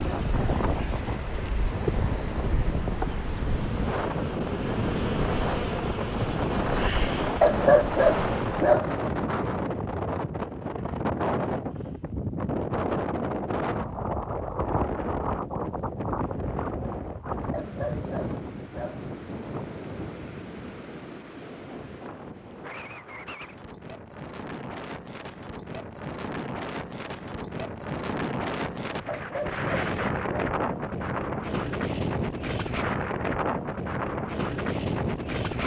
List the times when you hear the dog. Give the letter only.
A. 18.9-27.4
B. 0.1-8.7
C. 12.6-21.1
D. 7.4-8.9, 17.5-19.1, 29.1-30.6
D.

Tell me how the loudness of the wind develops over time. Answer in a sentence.
The loudness of the wind goes down, then up.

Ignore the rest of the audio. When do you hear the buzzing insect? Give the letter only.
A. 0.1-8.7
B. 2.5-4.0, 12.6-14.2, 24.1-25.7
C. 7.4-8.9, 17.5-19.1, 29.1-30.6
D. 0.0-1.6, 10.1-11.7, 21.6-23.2
A.